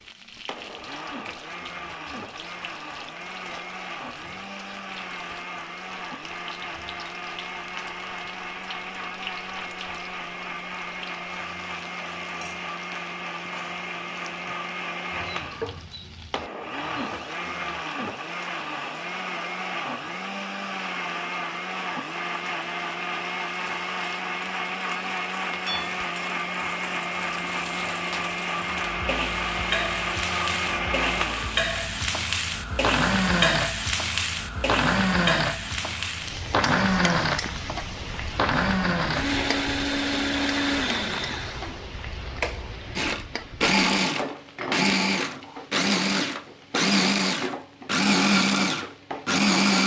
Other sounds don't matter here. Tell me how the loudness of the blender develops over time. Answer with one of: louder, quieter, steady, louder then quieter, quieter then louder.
louder.